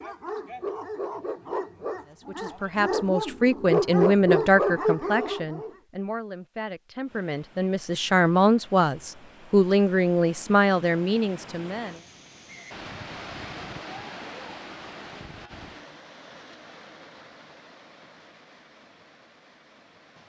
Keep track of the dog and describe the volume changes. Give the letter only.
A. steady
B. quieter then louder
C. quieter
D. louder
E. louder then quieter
D.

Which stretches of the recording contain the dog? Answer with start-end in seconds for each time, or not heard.
0.0-5.8.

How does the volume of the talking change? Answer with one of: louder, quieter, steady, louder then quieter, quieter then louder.
quieter then louder.